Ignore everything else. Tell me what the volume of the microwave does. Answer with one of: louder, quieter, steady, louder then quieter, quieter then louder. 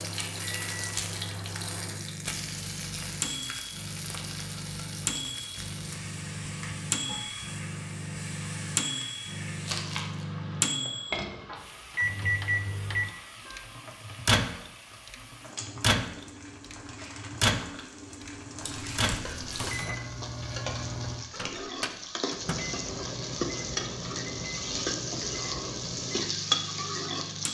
louder then quieter.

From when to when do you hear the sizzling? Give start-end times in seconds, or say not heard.
0.0-27.4.